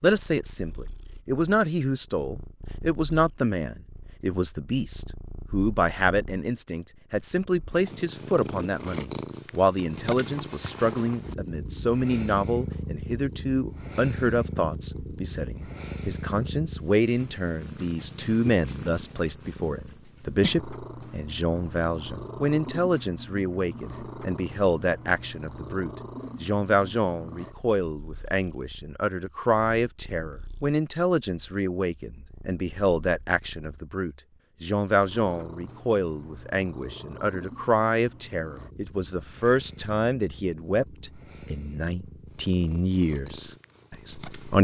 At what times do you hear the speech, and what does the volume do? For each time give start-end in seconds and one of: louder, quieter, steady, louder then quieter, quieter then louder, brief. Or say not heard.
0.0-44.5 steady.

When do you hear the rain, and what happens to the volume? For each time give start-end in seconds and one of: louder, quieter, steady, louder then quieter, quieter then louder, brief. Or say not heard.
not heard.